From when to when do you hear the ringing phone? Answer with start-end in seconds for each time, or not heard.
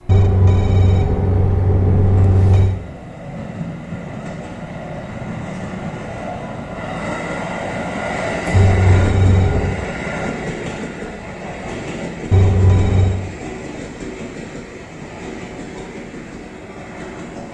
0.1-2.8, 8.5-9.8, 12.3-13.2.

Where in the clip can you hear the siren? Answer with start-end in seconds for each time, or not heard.
not heard.